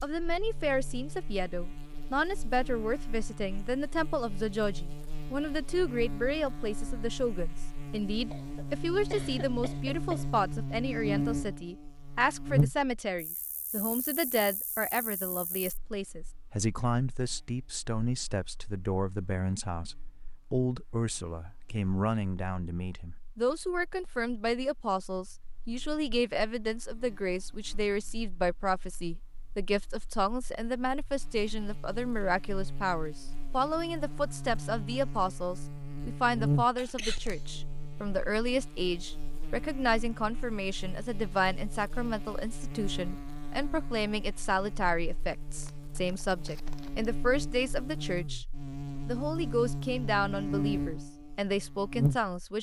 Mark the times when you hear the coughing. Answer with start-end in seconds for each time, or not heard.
8.3-10.3, 36.8-37.5.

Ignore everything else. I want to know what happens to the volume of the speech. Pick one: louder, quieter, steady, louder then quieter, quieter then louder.
steady.